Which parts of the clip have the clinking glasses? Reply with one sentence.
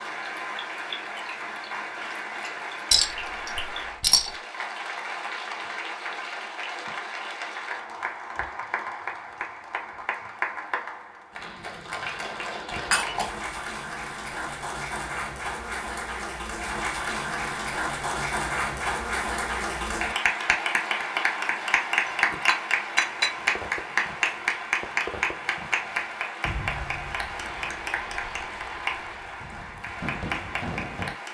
You can hear the clinking glasses from 2.9 to 4.3 s, from 12.7 to 13.6 s and from 22.3 to 23.3 s.